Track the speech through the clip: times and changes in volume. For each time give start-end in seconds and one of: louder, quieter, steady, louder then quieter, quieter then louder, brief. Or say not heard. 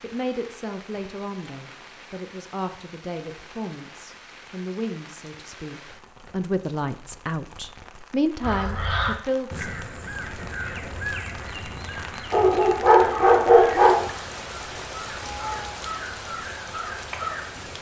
0.0-9.7 louder.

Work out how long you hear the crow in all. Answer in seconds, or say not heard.
9 s.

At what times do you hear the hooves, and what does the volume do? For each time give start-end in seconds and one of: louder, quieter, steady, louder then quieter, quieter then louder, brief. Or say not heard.
not heard.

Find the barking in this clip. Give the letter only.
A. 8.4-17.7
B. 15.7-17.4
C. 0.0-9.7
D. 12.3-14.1
D.